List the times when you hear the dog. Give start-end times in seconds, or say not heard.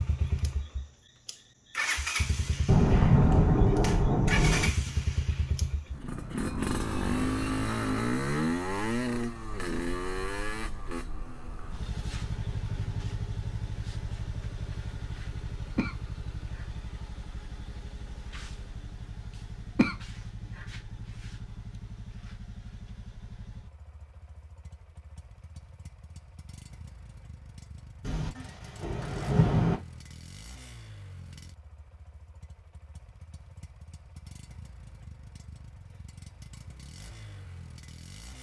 not heard.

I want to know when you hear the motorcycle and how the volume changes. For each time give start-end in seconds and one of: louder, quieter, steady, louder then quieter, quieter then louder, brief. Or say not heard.
0.0-38.3 quieter.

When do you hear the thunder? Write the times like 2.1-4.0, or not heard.
2.6-4.7, 28.0-29.8.